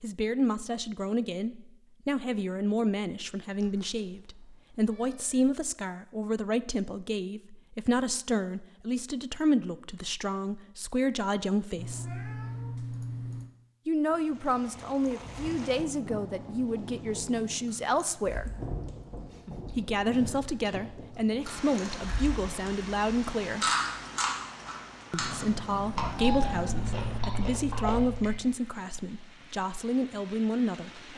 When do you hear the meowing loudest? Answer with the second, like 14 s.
26 s.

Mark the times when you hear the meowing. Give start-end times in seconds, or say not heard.
3.5-5.5, 11.8-13.5, 25.1-27.2.